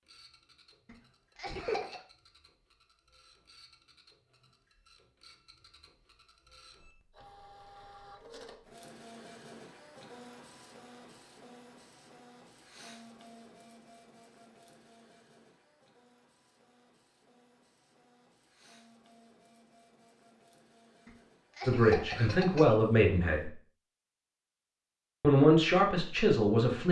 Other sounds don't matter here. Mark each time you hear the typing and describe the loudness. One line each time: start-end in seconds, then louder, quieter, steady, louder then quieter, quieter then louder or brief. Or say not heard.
not heard.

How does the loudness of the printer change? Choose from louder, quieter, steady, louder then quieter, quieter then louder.
louder then quieter.